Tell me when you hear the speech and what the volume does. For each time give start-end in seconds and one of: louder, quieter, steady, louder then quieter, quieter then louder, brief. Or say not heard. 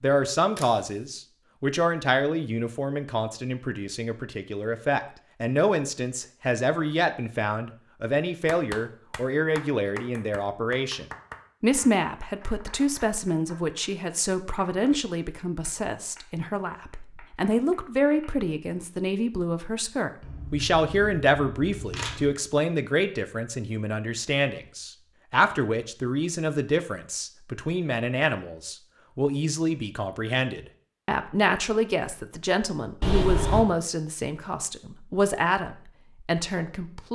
0.0-37.1 steady.